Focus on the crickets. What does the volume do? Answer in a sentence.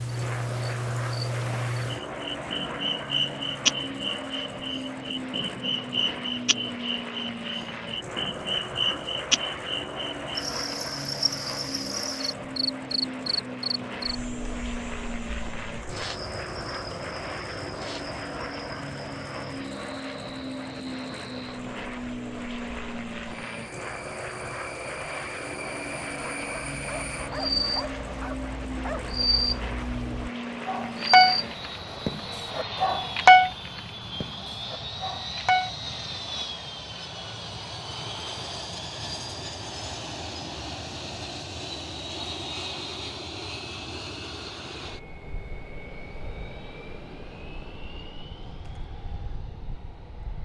The volume of the crickets goes down, then up.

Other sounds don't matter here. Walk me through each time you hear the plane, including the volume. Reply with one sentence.
The plane can be heard from 0.0 to 50.4 s, at a steady volume.